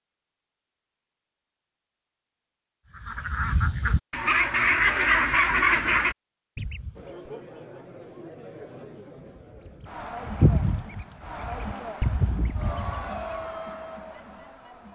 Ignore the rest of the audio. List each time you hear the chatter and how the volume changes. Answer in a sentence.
The chatter can be heard from 7.0 to 14.8 s, getting louder.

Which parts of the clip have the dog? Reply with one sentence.
You can't hear the dog here.